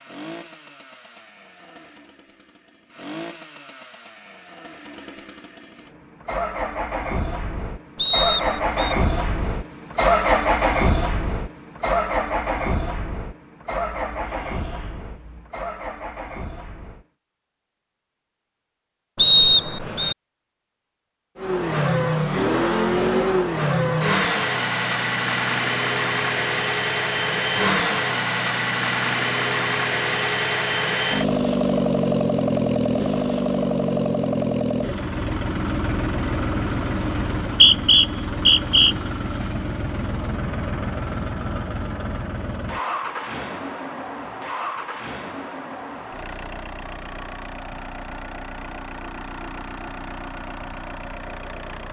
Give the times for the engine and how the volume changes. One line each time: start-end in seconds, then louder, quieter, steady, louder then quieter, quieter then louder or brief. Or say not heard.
0.0-17.1 louder then quieter
21.4-51.8 quieter.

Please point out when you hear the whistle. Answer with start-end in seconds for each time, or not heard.
8.0-8.9, 19.1-20.1, 37.4-39.0.